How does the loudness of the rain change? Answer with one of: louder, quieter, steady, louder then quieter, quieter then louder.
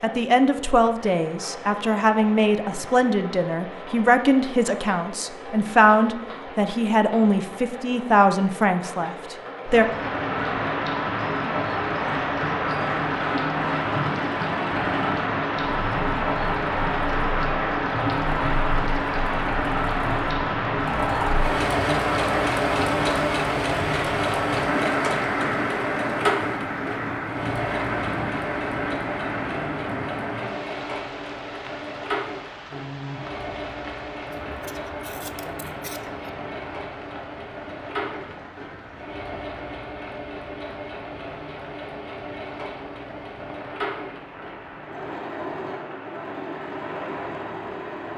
quieter.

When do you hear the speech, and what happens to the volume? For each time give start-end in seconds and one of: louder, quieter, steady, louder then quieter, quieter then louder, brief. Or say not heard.
0.0-9.8 steady.